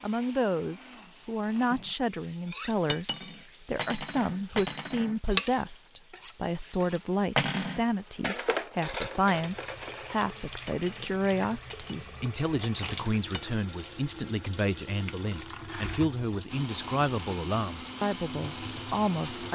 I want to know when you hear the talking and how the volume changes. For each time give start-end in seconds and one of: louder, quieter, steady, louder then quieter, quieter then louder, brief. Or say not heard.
0.0-19.5 steady.